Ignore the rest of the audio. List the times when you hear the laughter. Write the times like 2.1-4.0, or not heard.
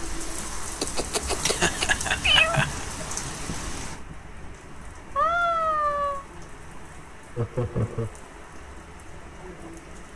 1.4-2.9, 7.3-8.1.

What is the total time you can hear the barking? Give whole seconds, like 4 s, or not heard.
not heard.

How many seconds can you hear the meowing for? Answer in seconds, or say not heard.
3 s.